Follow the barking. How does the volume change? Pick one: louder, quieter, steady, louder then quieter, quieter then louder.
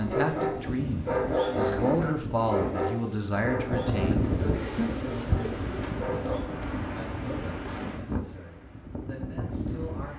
quieter.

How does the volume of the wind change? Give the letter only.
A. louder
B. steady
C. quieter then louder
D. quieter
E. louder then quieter
E.